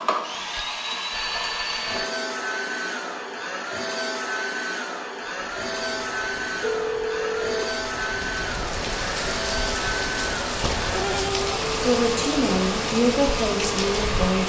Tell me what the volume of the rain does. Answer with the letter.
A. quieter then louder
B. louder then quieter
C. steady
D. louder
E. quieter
D.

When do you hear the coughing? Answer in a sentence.
You can't hear the coughing here.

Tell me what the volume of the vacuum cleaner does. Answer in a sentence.
The volume of the vacuum cleaner stays about the same.